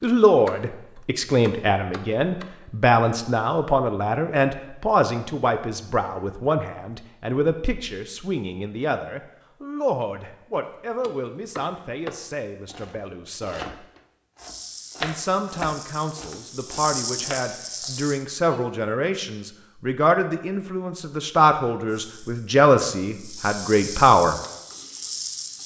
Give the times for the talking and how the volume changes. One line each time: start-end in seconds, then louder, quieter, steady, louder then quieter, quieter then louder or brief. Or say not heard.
0.0-13.8 quieter
15.0-24.4 louder.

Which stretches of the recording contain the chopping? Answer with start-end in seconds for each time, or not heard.
0.0-2.5, 11.0-18.7.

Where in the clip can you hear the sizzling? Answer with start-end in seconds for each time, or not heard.
14.3-18.2, 21.9-25.6.